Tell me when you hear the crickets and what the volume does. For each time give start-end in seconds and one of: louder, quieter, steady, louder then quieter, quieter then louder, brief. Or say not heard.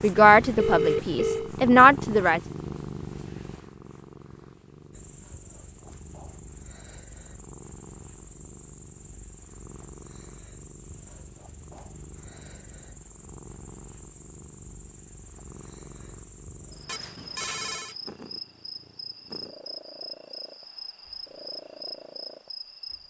4.9-23.0 louder.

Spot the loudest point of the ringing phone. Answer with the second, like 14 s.
1 s.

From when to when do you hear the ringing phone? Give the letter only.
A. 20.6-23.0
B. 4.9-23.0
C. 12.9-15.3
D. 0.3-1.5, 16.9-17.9
D.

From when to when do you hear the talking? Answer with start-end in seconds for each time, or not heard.
0.0-2.4.